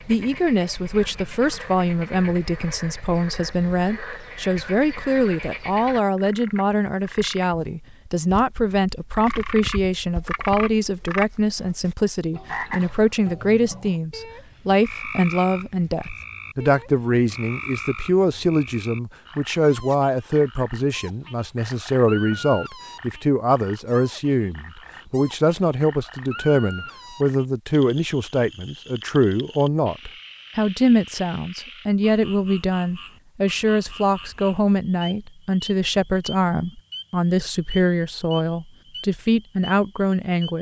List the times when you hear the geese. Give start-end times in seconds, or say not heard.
not heard.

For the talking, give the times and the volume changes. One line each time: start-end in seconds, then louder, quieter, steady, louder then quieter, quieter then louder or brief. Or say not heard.
0.1-40.5 steady.